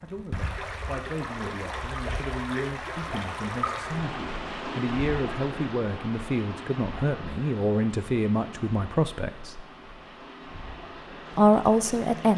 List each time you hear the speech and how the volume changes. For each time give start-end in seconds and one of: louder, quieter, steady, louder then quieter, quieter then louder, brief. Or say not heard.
0.0-9.7 louder
11.3-12.3 brief.